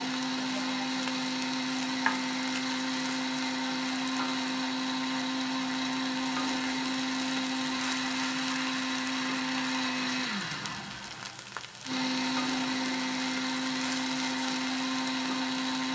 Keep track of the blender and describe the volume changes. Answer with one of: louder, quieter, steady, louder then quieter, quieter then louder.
steady.